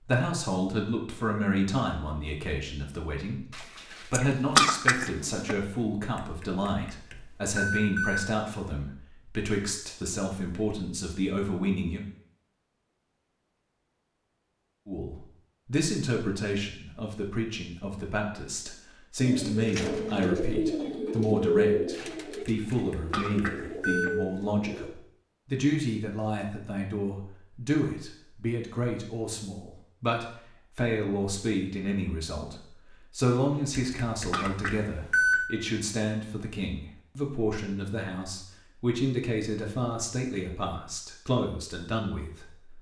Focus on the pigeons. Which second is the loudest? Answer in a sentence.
The loudest moment of the pigeons is at 22 seconds.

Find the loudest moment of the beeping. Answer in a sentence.
The loudest moment of the beeping is at 35 seconds.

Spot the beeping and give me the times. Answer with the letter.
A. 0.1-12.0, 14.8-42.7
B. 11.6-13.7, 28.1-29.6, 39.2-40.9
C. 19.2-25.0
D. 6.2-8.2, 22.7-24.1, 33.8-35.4
D.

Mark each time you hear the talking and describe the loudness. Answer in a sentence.
You can hear the talking from 0.1 to 12.0 s, at a steady volume; and from 14.8 to 42.7 s, at a steady volume.